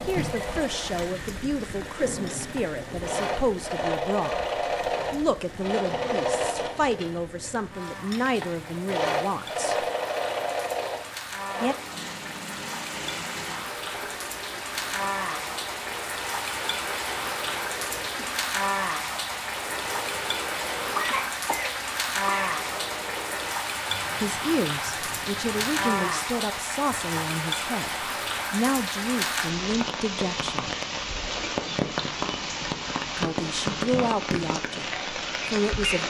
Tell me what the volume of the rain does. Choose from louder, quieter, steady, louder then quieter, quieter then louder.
louder.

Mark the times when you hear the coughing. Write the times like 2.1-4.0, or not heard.
0.1-1.1, 20.9-22.6.